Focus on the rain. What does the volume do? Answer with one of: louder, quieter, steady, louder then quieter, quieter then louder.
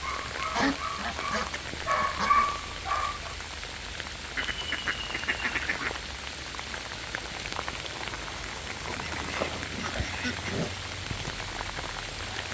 steady.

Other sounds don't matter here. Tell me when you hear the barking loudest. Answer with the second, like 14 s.
2 s.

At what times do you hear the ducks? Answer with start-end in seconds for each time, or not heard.
0.5-2.5, 4.3-6.0, 8.8-10.8.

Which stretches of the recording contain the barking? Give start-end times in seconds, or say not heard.
0.0-3.4.